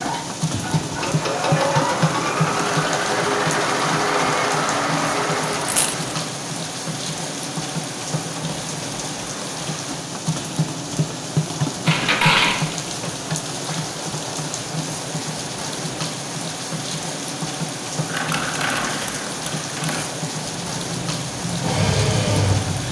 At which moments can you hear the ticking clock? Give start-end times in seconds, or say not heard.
not heard.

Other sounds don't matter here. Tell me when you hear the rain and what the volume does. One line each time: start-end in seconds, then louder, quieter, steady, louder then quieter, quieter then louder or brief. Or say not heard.
0.0-22.8 steady.